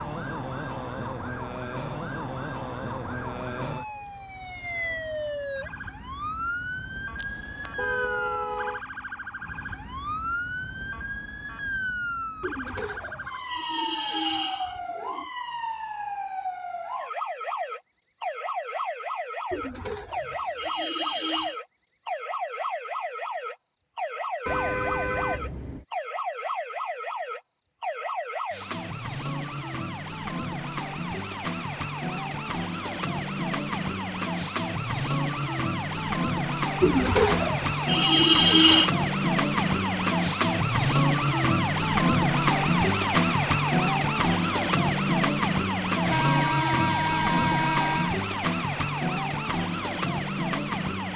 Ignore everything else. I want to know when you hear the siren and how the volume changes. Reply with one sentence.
You can hear the siren from 0.0 to 51.1 s, getting louder.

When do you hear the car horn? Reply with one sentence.
The car horn can be heard from 7.2 to 8.8 s, from 24.4 to 25.9 s and from 46.0 to 48.1 s.